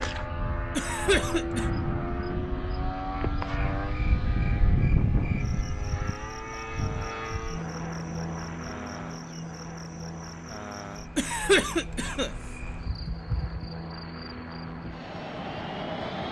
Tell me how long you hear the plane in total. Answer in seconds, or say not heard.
16 s.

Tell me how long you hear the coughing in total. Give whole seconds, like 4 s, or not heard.
2 s.